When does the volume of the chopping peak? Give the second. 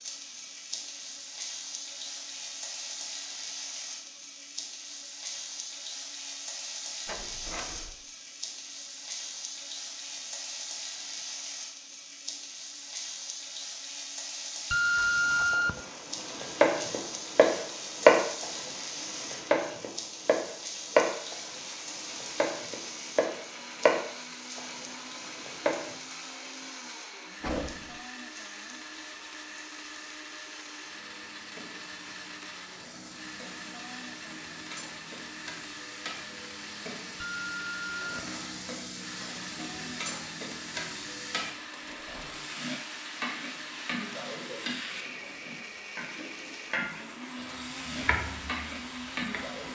18 s.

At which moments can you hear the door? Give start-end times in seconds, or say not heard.
7.0-8.0, 27.4-28.0, 41.8-42.4.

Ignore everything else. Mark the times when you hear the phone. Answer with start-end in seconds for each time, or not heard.
14.7-15.8, 37.2-38.3.